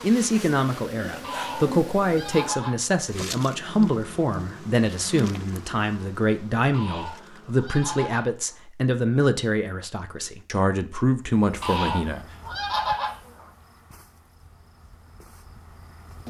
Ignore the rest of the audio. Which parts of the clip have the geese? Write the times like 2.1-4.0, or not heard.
1.2-2.8, 6.7-8.6, 11.6-13.4.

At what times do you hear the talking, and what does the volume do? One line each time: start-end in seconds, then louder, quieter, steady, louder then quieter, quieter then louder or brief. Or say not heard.
0.0-12.2 steady.